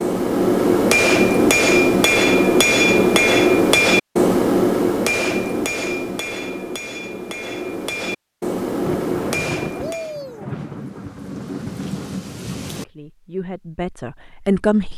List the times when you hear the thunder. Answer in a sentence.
You can hear the thunder from 8.8 to 12.8 s.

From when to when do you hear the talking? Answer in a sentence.
You can hear the talking from 12.7 to 14.9 s.